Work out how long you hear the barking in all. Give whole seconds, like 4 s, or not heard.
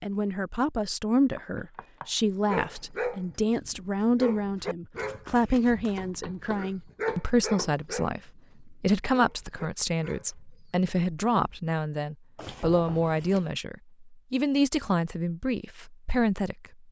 9 s.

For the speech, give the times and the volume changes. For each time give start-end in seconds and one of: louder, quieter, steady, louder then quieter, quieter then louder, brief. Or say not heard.
0.0-16.6 steady.